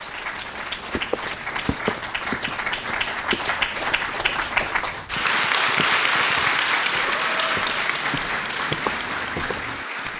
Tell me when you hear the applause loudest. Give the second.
6 s.